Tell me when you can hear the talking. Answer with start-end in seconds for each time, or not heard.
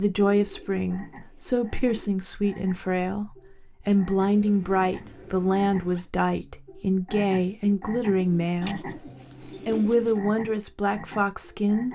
0.0-8.9, 9.7-11.9.